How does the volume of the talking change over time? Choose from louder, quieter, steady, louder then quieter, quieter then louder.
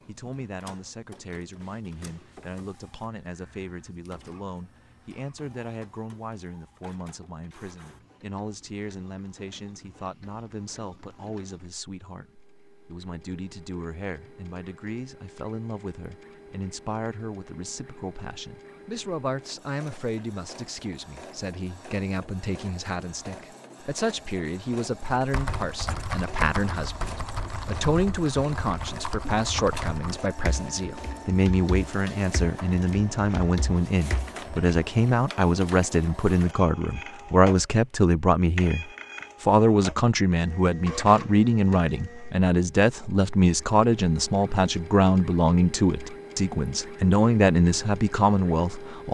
louder.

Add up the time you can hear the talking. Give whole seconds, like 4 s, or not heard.
49 s.